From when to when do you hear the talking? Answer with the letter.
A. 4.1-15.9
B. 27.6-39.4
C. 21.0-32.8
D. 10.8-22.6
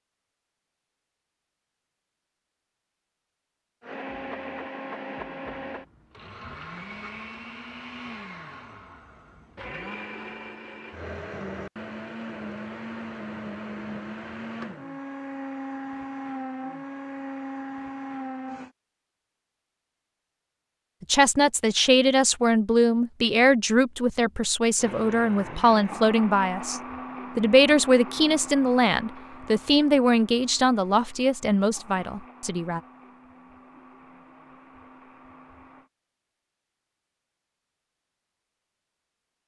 C.